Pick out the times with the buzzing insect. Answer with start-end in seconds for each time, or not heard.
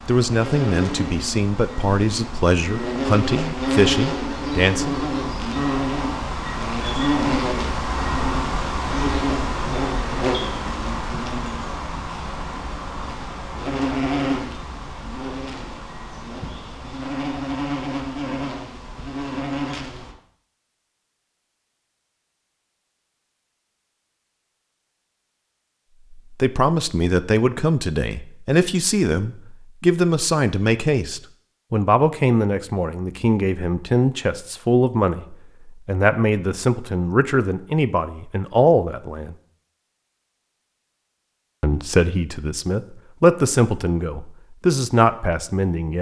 0.0-20.1.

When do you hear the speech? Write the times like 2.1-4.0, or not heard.
0.1-5.0, 26.4-39.4, 41.6-45.9.